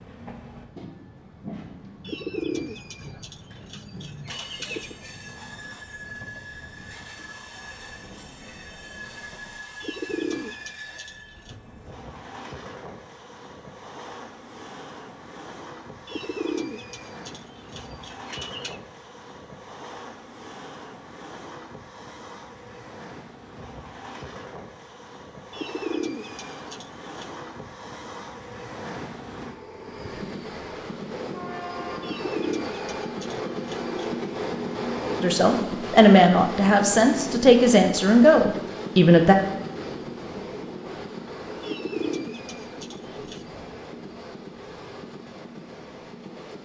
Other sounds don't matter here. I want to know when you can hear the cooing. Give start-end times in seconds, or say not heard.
2.0-5.0, 9.8-11.6, 16.1-18.8, 25.5-27.2, 32.0-34.0, 41.6-43.5.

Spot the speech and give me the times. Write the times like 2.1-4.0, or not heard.
35.2-39.4.